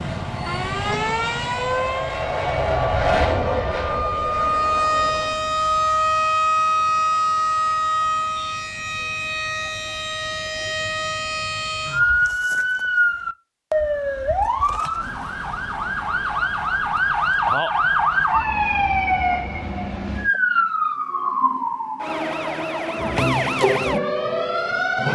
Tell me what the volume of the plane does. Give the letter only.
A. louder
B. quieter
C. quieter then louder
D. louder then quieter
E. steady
D.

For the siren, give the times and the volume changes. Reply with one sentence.
The siren can be heard from 0.0 to 25.1 s, at a steady volume.